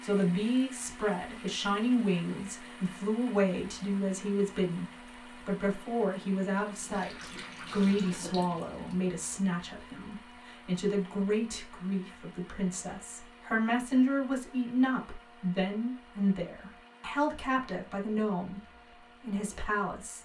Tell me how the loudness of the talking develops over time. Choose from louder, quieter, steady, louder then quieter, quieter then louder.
steady.